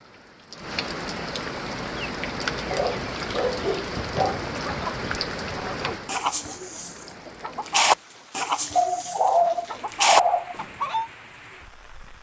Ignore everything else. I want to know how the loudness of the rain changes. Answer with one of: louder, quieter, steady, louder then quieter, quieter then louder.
quieter.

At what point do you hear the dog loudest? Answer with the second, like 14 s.
9 s.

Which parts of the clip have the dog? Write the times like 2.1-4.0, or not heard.
2.7-4.5, 8.8-10.6.